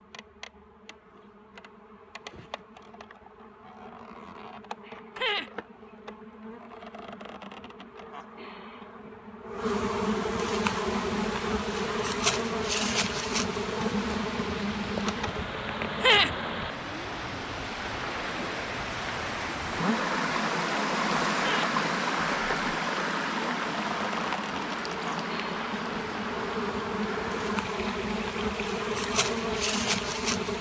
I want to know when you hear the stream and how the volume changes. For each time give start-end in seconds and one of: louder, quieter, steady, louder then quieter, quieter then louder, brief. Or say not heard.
10.7-30.5 louder then quieter.